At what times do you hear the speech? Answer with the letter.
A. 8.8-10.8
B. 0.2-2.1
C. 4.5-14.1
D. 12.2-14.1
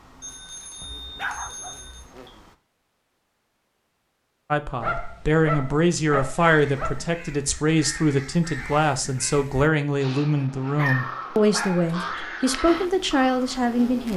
C.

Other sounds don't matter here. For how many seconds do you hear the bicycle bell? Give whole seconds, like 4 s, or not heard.
2 s.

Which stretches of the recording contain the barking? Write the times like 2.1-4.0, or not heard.
0.8-2.3, 4.8-7.1, 10.8-12.3.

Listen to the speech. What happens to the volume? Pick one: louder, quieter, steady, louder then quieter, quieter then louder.
steady.